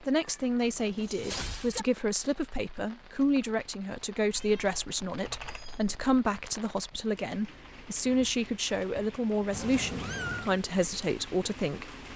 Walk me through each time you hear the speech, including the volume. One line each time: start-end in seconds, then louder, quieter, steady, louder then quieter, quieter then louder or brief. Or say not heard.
0.0-12.1 steady.